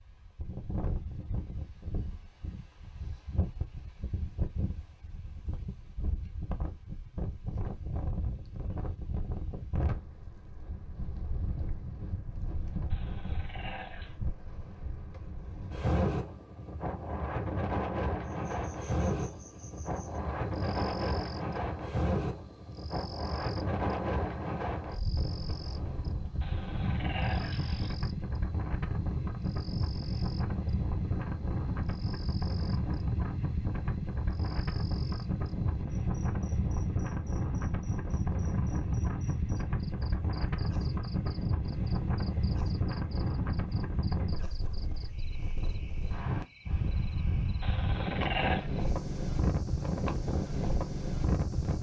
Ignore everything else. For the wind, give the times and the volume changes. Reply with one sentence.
You can hear the wind from 0.0 to 51.7 s, getting louder.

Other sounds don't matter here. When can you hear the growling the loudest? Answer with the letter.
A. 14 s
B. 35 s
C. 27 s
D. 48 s
D.